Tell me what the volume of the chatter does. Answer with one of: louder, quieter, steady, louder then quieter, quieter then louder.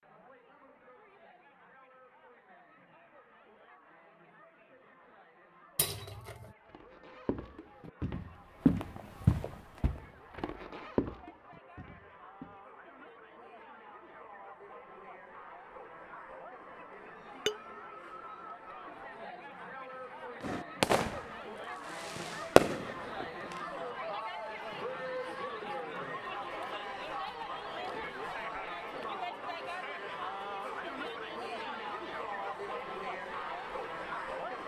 louder.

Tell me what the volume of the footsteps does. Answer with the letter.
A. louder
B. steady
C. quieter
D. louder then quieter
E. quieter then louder
D.